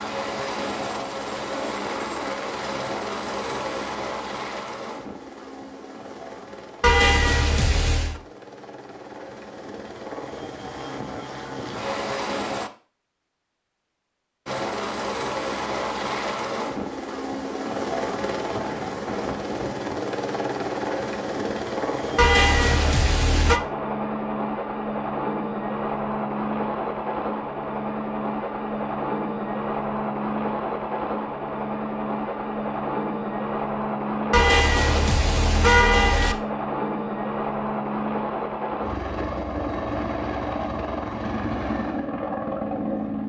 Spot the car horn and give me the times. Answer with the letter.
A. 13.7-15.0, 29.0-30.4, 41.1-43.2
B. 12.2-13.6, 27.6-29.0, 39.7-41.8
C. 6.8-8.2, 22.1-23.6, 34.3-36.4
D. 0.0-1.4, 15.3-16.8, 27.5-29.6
C.